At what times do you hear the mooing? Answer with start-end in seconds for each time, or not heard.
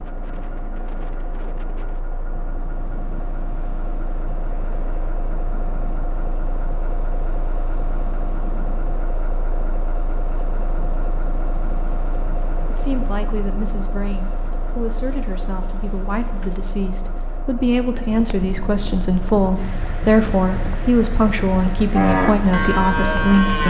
21.9-23.6.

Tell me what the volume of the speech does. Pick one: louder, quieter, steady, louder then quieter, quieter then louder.
louder.